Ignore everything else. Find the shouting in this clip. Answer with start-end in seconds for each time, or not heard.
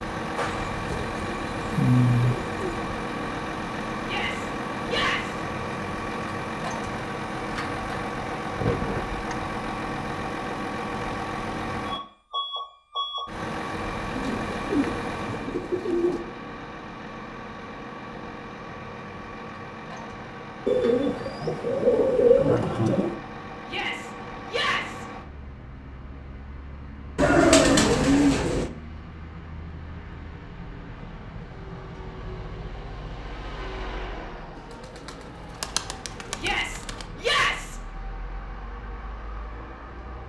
4.0-5.4, 23.6-25.1, 36.4-37.8.